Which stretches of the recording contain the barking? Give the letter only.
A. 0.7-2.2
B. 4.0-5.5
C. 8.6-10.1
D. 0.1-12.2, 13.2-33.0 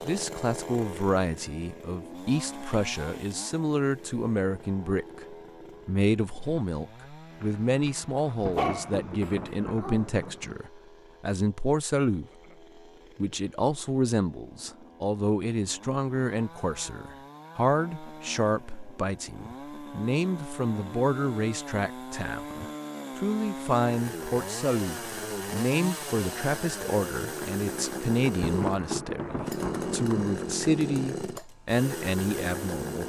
C.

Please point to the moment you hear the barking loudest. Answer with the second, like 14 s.
9 s.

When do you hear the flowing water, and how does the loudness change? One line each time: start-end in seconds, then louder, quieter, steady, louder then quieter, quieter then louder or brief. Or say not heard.
not heard.